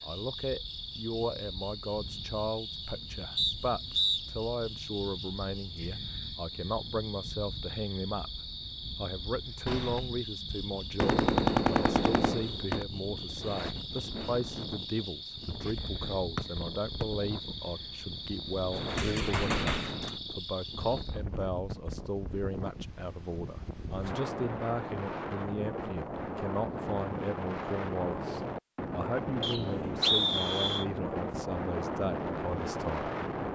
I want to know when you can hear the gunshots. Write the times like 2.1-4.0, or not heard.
9.7-12.8, 18.9-20.2.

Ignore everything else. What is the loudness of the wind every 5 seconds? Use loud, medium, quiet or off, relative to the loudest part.
quiet, quiet, medium, medium, medium, loud, loud.